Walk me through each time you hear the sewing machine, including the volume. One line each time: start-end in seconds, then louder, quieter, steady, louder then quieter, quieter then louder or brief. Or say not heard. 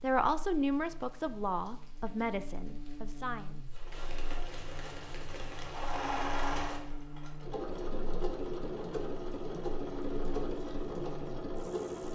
3.8-12.1 louder.